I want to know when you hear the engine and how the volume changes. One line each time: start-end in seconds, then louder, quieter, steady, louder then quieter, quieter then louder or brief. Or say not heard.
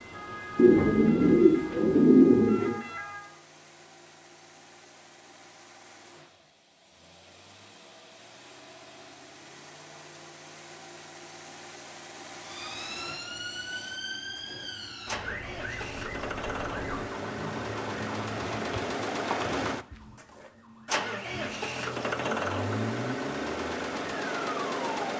0.0-25.1 louder.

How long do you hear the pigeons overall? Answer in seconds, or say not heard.
4 s.